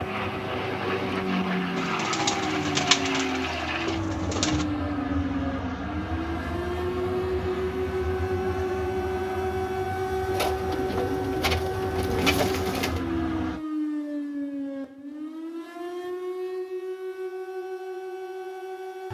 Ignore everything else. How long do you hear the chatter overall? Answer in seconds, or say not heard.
not heard.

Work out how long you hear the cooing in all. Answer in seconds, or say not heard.
6 s.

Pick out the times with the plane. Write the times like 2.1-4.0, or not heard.
0.0-13.6.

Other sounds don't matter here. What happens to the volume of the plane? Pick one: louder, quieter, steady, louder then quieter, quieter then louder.
quieter.